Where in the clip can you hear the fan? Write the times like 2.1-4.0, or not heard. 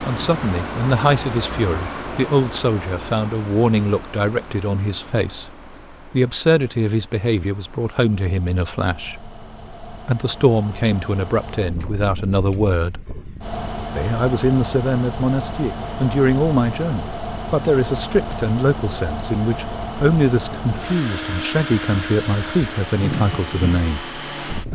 0.0-24.7.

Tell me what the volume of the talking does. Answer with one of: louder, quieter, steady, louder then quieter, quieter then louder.
steady.